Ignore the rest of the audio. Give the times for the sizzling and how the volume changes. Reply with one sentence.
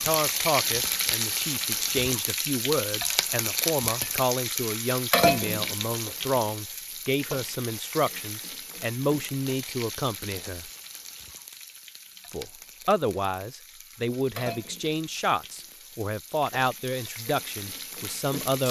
The sizzling can be heard from 0.0 to 18.6 s, getting quieter.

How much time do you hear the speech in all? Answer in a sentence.
You can hear the speech for 17 seconds altogether.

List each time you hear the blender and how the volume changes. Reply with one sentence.
The blender can't be heard in this clip.